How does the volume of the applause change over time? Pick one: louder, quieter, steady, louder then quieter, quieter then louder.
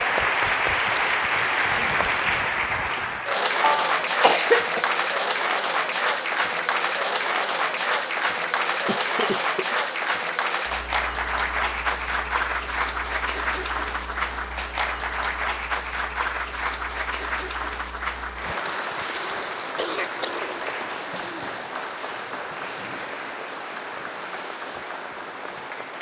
quieter.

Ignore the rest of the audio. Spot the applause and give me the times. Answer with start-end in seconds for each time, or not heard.
0.0-25.9.